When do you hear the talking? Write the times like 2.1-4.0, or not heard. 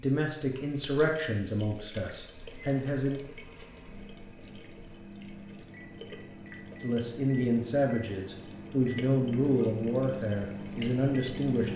0.0-3.2, 6.8-11.7.